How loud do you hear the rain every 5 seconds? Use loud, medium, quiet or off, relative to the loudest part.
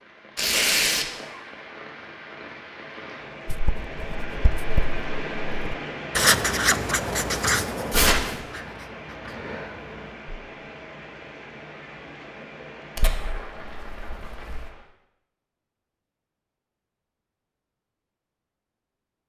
loud, loud, medium, off.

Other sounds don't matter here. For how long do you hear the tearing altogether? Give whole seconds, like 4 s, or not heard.
3 s.